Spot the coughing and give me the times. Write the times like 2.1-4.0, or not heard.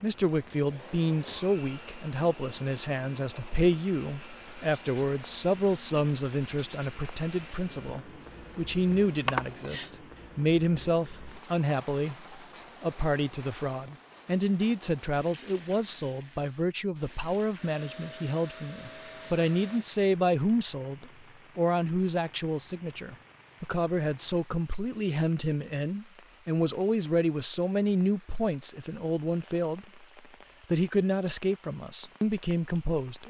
9.2-9.9.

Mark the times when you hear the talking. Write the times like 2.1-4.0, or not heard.
0.0-29.9, 30.7-33.2.